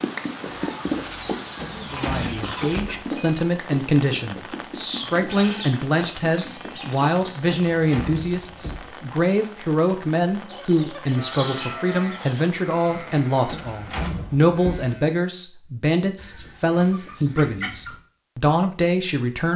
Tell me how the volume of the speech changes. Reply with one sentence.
The volume of the speech stays about the same.